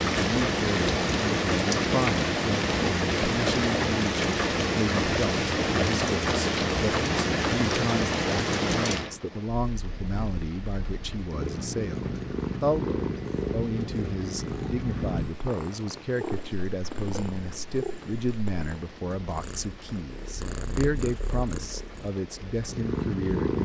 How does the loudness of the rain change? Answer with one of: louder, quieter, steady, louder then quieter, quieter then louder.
quieter.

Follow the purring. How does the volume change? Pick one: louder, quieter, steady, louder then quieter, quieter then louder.
quieter then louder.